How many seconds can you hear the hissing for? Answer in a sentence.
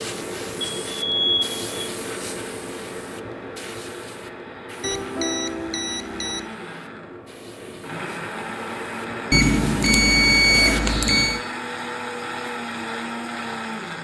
You can hear the hissing for 11 seconds altogether.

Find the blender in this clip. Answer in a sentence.
The blender can be heard from 0.0 to 13.9 s.